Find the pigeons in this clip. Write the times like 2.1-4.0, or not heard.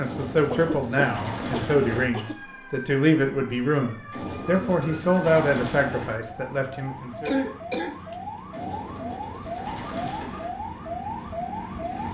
0.0-2.1, 4.1-6.2, 8.5-10.6.